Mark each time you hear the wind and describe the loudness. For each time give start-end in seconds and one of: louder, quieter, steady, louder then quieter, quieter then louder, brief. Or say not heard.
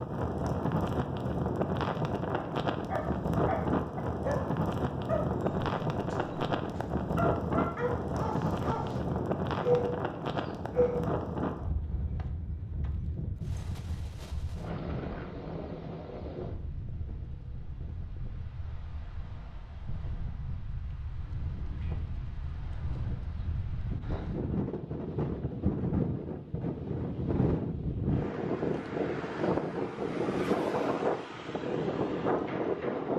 0.0-33.1 quieter then louder.